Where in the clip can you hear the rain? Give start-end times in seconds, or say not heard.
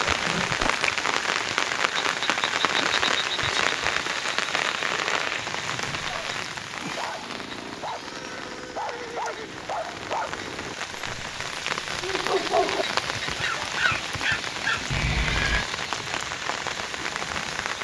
0.0-17.7.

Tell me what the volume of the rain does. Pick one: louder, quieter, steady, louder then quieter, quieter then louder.
quieter then louder.